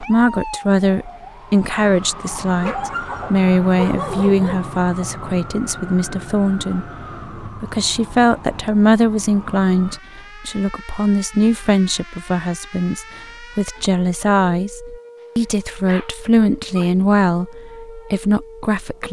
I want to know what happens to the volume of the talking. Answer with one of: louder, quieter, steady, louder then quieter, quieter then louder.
steady.